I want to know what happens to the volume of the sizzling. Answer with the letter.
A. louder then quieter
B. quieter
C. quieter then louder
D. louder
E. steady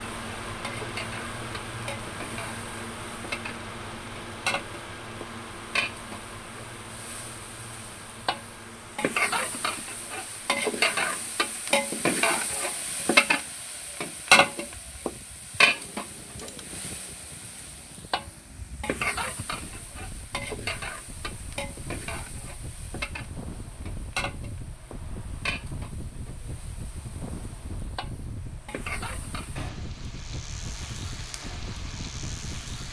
A.